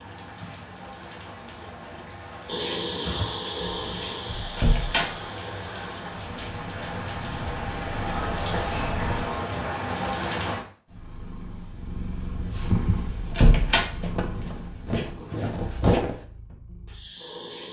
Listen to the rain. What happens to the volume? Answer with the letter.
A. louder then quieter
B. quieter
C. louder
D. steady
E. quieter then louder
C.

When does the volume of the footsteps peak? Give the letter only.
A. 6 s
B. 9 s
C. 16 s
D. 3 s
C.